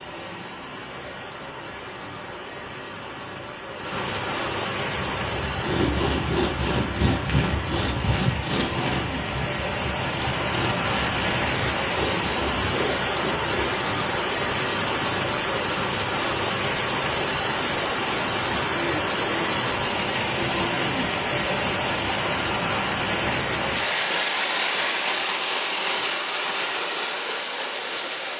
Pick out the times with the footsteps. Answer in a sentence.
You can't hear the footsteps here.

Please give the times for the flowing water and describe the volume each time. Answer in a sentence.
The flowing water can be heard from 0.0 to 28.3 s, getting louder.